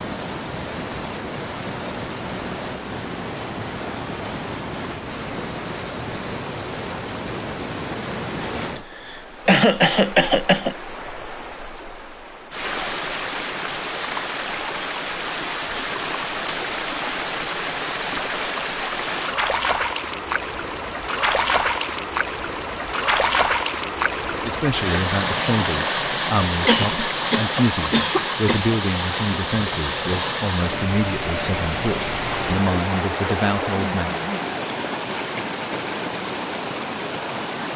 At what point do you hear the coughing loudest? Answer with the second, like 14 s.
10 s.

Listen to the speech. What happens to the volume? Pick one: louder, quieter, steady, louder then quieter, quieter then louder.
steady.